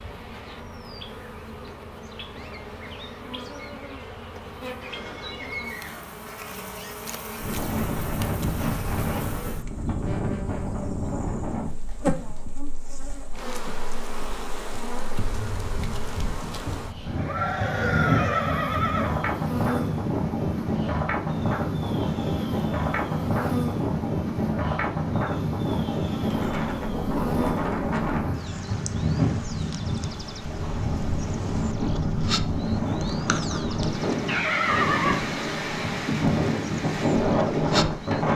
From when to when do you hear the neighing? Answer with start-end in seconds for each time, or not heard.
4.8-6.2, 17.1-19.1, 33.6-35.3.